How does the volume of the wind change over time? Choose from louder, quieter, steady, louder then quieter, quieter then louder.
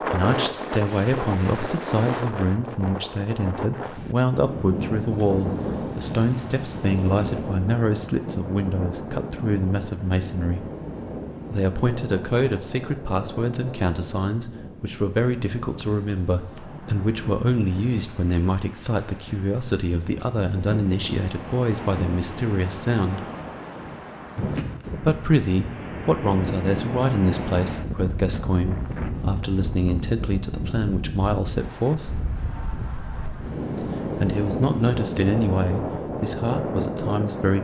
quieter then louder.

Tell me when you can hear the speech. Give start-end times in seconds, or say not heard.
0.1-10.7, 11.5-23.2, 24.9-32.2, 33.8-37.5.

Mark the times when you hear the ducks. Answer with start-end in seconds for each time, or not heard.
not heard.